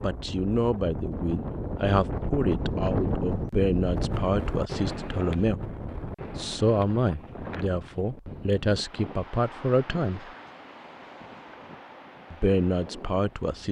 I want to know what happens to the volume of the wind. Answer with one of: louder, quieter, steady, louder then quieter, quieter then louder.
quieter.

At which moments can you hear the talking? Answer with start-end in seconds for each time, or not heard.
0.0-5.6, 6.3-10.3, 12.3-13.6.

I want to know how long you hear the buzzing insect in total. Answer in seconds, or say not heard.
not heard.